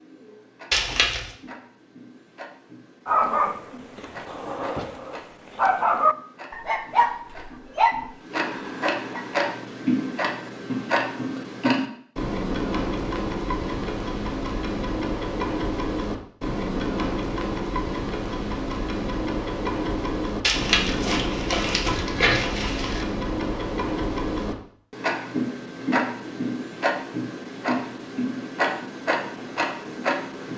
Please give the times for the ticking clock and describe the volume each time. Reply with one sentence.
The ticking clock can be heard from 0.0 to 30.5 s, getting louder.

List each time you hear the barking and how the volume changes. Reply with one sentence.
The barking can be heard from 3.0 to 9.4 s, getting louder then quieter.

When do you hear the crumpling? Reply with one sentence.
The crumpling can be heard from 0.7 to 1.4 s and from 20.4 to 23.1 s.